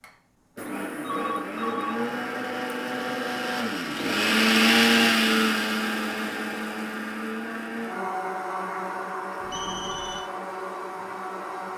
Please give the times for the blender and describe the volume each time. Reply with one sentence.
The blender can be heard from 0.0 to 11.7 s, getting louder then quieter.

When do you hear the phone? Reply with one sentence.
The phone can be heard from 0.9 to 2.1 s and from 9.4 to 10.2 s.